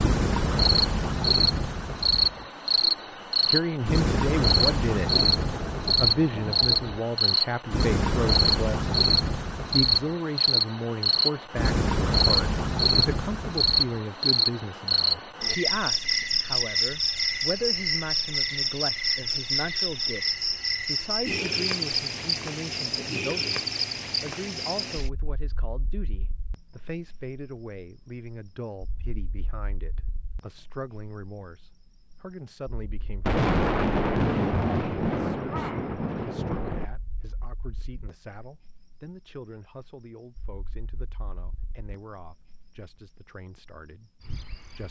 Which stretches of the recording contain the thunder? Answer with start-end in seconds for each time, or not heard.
5.1-7.0, 33.2-36.9.